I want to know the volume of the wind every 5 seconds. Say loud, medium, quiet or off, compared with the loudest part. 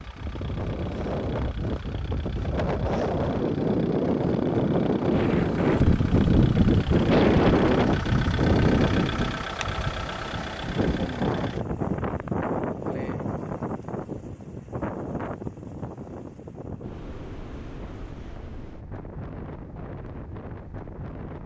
medium, loud, medium, quiet, quiet.